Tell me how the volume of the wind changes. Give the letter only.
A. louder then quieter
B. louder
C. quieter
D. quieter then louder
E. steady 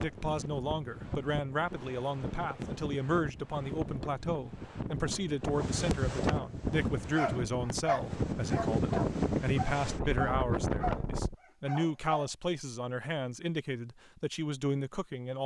B.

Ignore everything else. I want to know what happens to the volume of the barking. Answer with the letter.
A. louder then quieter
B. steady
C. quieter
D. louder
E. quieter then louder
C.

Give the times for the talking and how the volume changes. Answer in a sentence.
The talking can be heard from 0.0 to 15.4 s, at a steady volume.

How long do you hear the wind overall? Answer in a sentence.
You can hear the wind for 11 seconds altogether.